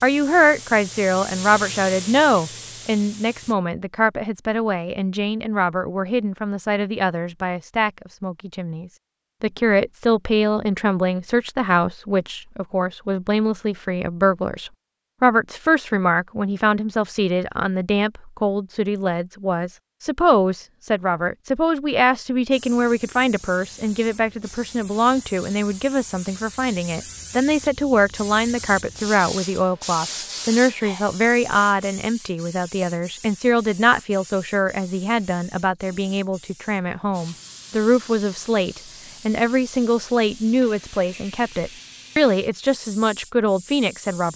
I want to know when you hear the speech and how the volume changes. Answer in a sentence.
You can hear the speech from 0.0 to 44.3 s, at a steady volume.